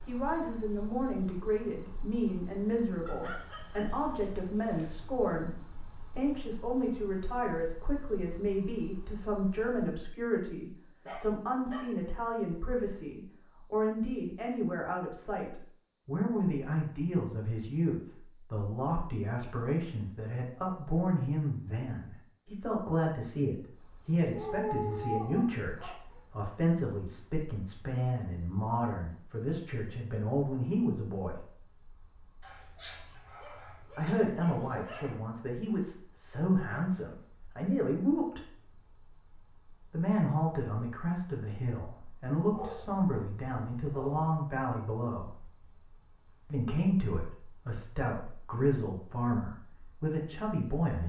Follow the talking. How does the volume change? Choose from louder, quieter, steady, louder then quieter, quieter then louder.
steady.